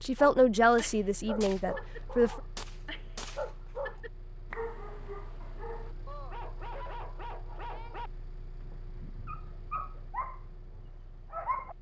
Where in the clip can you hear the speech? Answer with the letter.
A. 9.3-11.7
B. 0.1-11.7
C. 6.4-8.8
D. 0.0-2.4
D.